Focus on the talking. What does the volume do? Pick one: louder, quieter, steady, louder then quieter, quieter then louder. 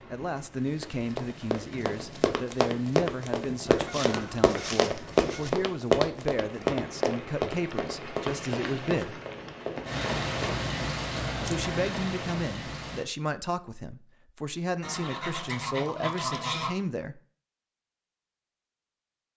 steady.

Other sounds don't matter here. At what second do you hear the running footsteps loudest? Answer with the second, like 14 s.
6 s.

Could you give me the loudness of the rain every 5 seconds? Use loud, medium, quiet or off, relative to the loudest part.
quiet, medium, loud, off.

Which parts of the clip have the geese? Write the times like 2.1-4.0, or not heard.
3.6-5.5, 14.8-16.8.